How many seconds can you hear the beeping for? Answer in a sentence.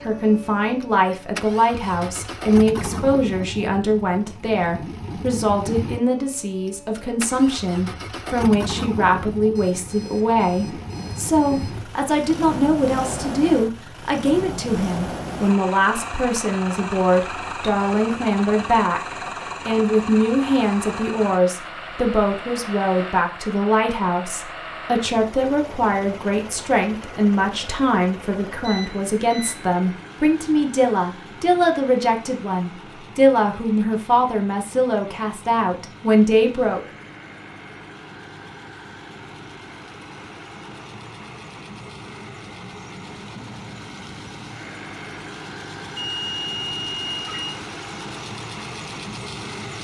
You can hear the beeping for 5 seconds altogether.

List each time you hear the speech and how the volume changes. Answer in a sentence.
You can hear the speech from 0.0 to 36.8 s, at a steady volume.